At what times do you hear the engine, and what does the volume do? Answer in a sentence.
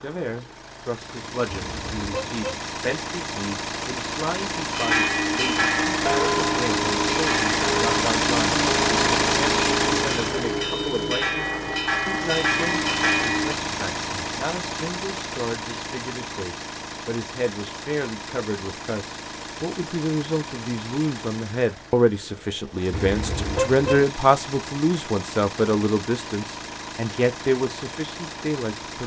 The engine can be heard from 0.0 to 29.0 s, getting louder then quieter.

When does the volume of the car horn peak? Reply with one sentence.
The loudest moment of the car horn is at 24 seconds.